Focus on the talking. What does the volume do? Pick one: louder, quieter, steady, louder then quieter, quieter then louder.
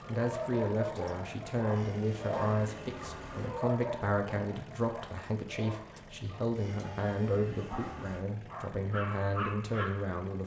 steady.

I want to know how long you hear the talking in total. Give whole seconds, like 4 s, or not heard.
10 s.